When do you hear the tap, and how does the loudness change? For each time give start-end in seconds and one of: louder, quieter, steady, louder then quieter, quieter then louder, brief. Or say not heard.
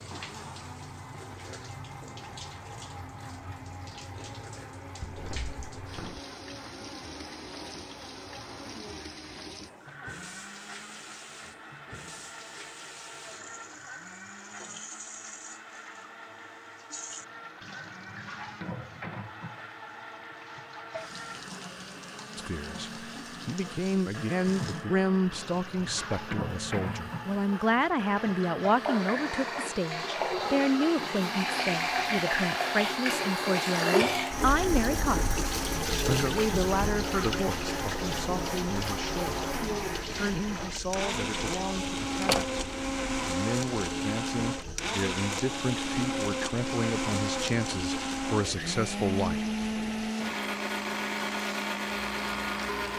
0.0-52.9 louder then quieter.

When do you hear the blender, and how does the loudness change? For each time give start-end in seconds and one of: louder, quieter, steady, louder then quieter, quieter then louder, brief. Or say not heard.
0.1-52.9 louder.